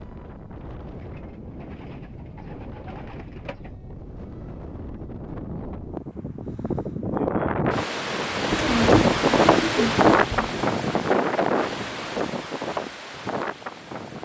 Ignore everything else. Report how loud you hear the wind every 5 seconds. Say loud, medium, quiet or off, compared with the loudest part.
quiet, loud, loud.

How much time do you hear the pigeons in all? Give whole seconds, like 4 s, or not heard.
5 s.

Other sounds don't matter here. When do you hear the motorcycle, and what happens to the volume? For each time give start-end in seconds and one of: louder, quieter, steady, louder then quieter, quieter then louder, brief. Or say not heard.
not heard.